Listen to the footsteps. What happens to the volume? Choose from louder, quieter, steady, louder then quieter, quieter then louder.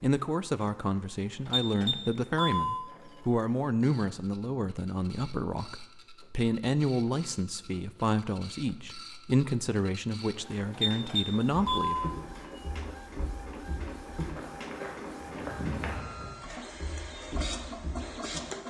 louder then quieter.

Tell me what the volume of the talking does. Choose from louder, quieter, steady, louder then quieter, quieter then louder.
steady.